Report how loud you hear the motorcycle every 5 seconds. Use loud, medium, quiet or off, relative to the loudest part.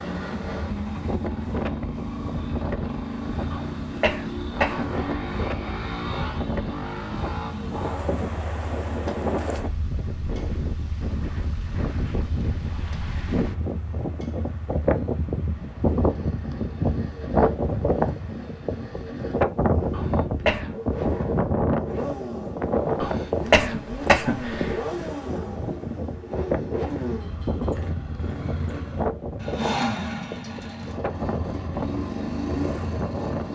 loud, loud, quiet, medium, loud, loud, loud.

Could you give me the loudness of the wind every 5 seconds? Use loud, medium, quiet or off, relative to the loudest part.
medium, medium, medium, loud, loud, medium, medium.